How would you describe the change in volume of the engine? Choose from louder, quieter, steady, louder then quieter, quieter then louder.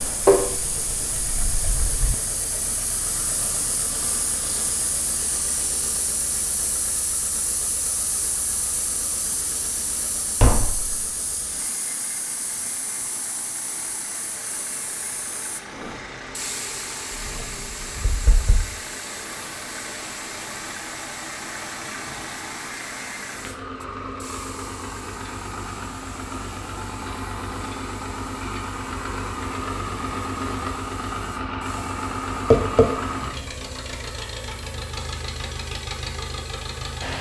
louder.